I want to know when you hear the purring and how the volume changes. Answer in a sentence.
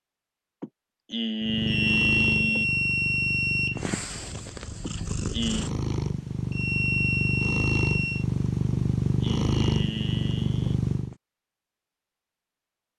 The purring can be heard from 1.4 to 11.2 s, getting louder.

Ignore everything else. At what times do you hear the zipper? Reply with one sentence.
You can't hear the zipper here.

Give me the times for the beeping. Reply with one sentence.
You can hear the beeping from 1.6 to 3.8 s and from 6.5 to 8.2 s.